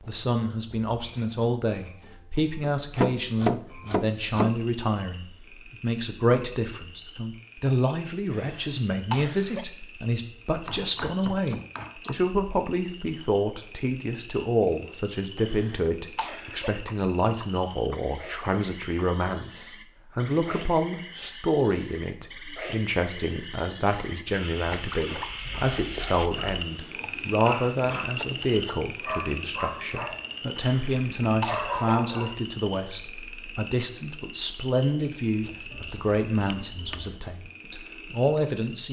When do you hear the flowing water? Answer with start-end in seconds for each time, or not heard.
not heard.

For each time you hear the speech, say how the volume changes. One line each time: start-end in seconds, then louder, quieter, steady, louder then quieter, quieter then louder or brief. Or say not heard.
0.0-38.8 steady.